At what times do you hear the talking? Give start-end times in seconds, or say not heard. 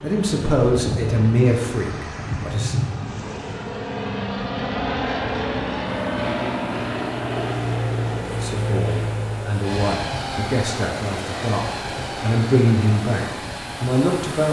0.0-2.8, 8.3-14.4.